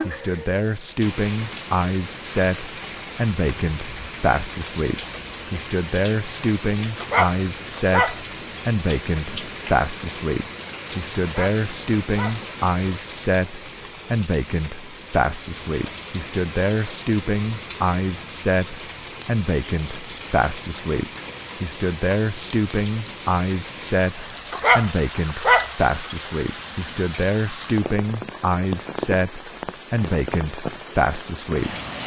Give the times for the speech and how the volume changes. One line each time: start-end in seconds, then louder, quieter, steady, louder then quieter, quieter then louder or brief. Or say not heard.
0.1-31.8 steady.